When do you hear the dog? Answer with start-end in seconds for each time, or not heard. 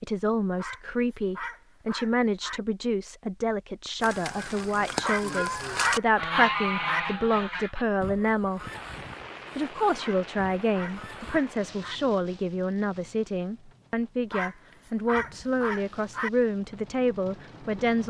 0.6-2.6, 5.0-7.0, 9.9-12.0, 14.3-16.3.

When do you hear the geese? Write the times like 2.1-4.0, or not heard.
4.0-11.4.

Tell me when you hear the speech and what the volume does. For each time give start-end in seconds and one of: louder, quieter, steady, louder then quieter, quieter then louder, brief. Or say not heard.
0.0-8.7 steady
9.6-18.0 steady.